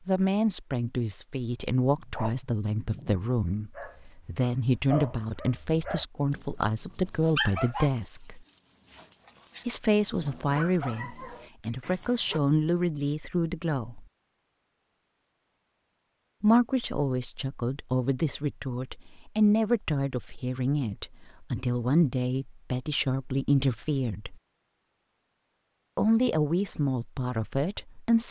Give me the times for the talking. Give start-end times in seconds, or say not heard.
0.1-8.4, 9.7-14.1, 16.4-24.4, 25.9-28.2.